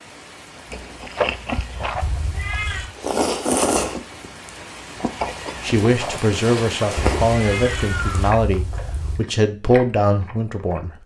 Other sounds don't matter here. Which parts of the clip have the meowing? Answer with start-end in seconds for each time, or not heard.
2.0-3.0, 7.0-9.2.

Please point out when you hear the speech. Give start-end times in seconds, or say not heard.
5.6-10.9.